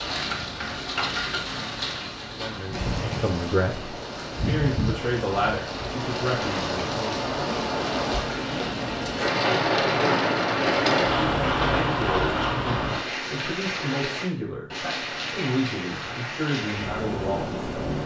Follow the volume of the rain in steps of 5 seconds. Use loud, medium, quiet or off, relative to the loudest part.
medium, loud, loud, medium.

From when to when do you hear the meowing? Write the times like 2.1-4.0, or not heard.
not heard.